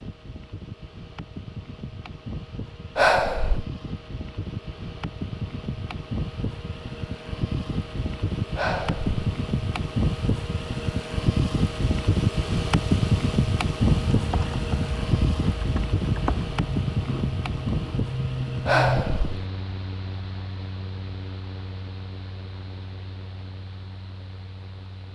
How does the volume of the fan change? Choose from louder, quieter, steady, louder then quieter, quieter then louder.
louder then quieter.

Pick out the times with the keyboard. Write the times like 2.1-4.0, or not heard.
13.8-19.1.